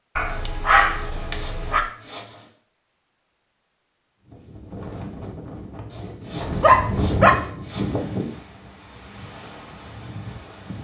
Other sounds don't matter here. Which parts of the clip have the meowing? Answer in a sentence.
The meowing can't be heard in this clip.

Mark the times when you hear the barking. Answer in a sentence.
The barking can be heard from 0.1 to 1.9 s and from 6.4 to 7.3 s.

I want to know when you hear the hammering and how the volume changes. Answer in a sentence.
The hammering can't be heard in this clip.